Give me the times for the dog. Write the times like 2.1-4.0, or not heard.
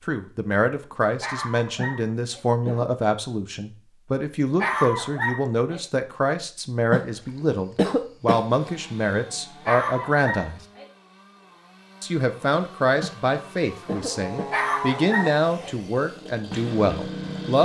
1.2-2.5, 4.5-5.8, 9.7-10.9, 14.5-15.8.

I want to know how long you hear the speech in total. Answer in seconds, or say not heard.
16 s.